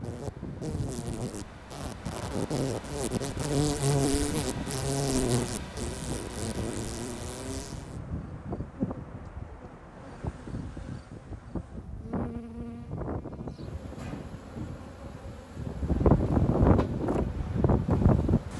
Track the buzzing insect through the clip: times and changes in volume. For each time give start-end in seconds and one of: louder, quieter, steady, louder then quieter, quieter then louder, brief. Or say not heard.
0.0-18.5 quieter.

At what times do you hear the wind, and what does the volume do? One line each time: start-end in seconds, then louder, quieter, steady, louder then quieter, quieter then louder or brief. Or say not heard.
0.0-18.5 louder.